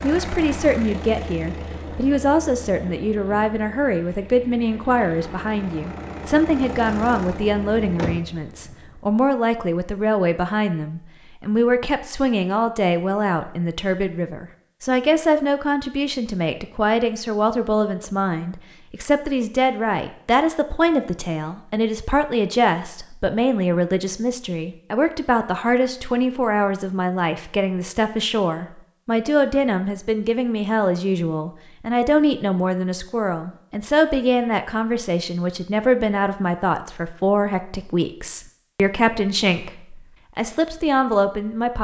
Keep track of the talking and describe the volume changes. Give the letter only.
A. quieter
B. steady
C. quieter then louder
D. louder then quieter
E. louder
B.